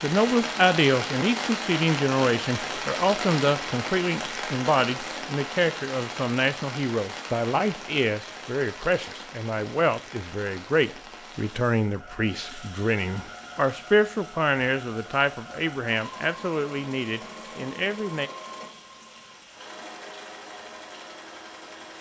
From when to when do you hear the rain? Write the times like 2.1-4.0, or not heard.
0.0-21.9.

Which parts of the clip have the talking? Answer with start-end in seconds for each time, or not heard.
0.0-18.3.